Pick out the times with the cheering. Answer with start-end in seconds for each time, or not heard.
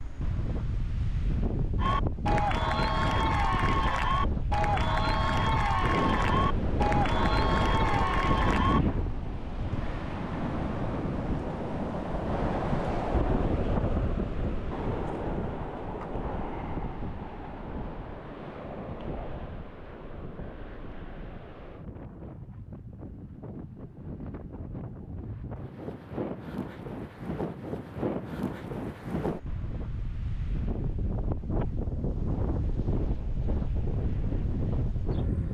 1.8-8.8.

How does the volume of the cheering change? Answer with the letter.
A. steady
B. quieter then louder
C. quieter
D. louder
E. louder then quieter
A.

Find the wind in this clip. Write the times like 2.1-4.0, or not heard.
0.0-35.5.